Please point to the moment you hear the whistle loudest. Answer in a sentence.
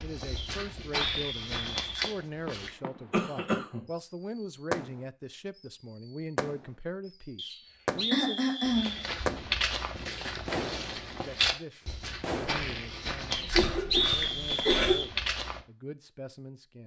The loudest moment of the whistle is at 14 seconds.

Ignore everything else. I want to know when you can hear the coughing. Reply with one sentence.
You can hear the coughing from 3.1 to 3.9 s, from 8.1 to 9.0 s and from 13.3 to 14.9 s.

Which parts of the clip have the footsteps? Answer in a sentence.
The footsteps can be heard from 0.0 to 2.7 s and from 8.6 to 15.7 s.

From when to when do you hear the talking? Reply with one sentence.
You can hear the talking from 0.0 to 8.4 s and from 11.2 to 16.8 s.